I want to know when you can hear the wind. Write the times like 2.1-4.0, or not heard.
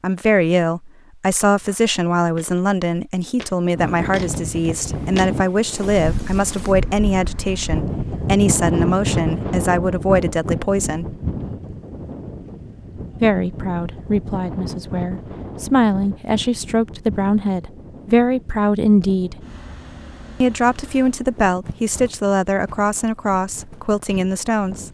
3.7-24.8.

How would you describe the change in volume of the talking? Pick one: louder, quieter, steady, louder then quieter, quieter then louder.
steady.